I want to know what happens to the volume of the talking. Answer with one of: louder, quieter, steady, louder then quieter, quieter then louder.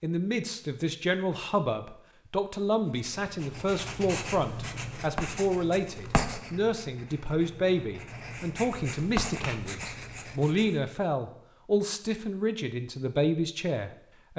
steady.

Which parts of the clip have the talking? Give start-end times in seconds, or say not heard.
0.0-14.3.